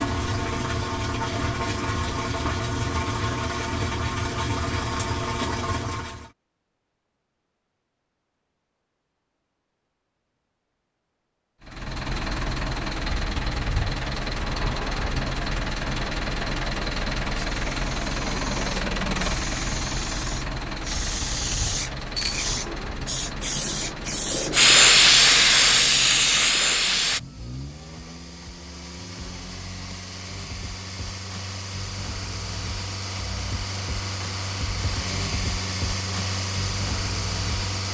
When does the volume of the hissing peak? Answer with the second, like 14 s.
25 s.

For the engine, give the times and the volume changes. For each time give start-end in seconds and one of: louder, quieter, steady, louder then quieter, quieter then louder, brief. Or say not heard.
0.0-6.3 steady
11.6-37.8 quieter then louder.